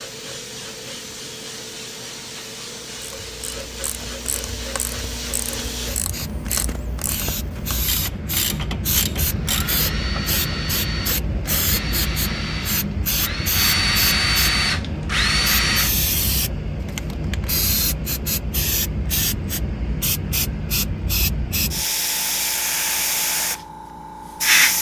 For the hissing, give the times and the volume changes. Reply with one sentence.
The hissing can be heard from 0.0 to 24.7 s, getting louder.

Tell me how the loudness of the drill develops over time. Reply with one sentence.
The loudness of the drill goes up.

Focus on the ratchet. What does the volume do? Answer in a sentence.
The volume of the ratchet goes up.